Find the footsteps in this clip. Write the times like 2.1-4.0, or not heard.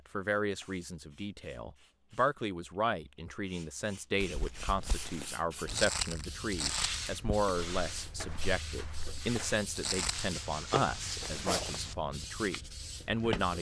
4.2-11.8.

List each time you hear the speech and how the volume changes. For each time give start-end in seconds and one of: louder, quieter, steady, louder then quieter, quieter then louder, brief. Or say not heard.
0.1-13.5 steady.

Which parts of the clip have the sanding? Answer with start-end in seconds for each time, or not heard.
6.6-12.7.